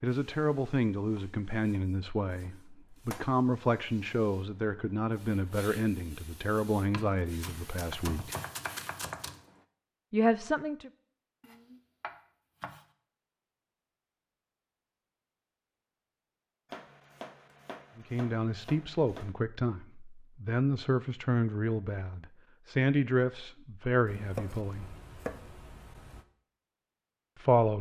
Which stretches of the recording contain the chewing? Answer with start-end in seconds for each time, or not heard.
not heard.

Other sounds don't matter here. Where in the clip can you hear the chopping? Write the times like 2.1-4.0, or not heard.
1.1-3.3, 6.9-9.4, 11.4-12.8, 16.7-19.4, 24.1-26.2.